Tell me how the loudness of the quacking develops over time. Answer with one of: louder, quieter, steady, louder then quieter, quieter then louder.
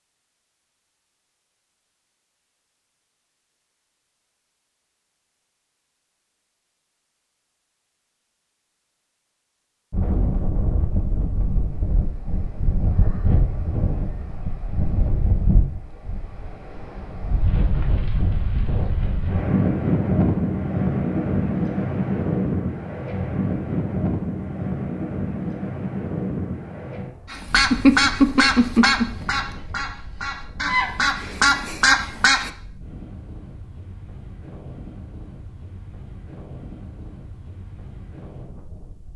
quieter then louder.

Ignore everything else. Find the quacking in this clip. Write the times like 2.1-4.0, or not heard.
27.3-32.5.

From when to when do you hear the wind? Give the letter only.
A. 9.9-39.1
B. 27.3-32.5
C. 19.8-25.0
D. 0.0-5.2
A.